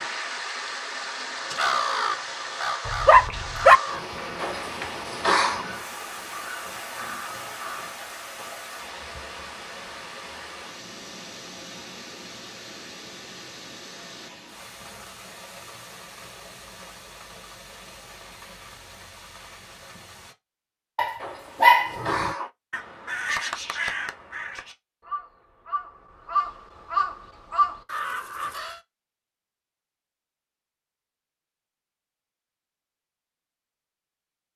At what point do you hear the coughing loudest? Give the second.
5 s.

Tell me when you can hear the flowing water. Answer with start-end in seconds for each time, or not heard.
0.0-20.4.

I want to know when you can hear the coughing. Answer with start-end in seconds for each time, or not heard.
4.3-5.7, 21.2-22.5.